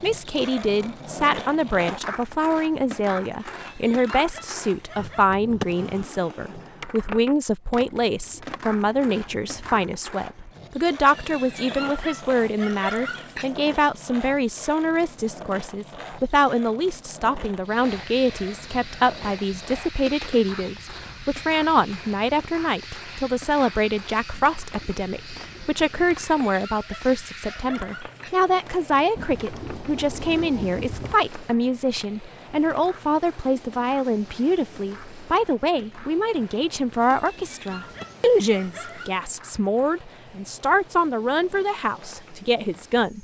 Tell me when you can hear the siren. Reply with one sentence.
You can't hear the siren here.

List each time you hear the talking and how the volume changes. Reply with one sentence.
You can hear the talking from 0.0 to 43.1 s, at a steady volume.